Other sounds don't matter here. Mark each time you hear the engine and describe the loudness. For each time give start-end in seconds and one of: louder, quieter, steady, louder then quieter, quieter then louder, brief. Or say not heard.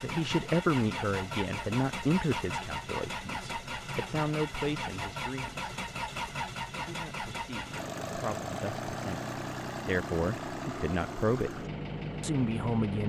0.0-13.0 steady.